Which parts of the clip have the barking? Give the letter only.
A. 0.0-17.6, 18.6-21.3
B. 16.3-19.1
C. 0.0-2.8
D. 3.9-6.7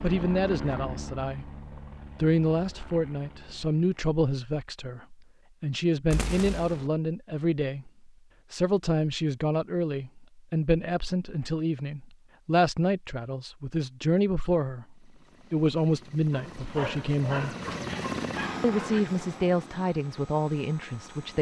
B.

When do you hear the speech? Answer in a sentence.
You can hear the speech from 0.0 to 17.6 s and from 18.6 to 21.3 s.